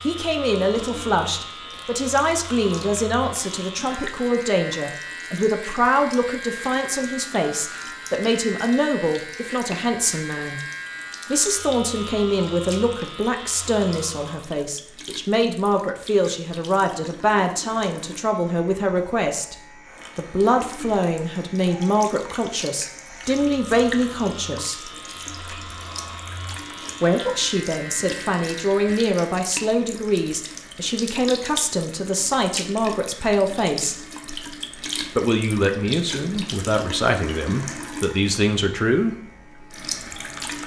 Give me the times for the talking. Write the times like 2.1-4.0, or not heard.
0.0-10.6, 11.2-19.6, 20.1-24.9, 27.0-34.0, 35.1-39.1.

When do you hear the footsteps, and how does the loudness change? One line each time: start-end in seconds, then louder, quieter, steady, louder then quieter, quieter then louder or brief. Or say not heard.
not heard.